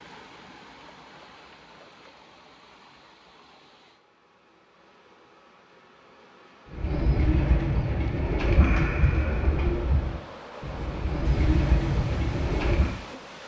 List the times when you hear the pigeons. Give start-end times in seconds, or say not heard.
6.7-12.9.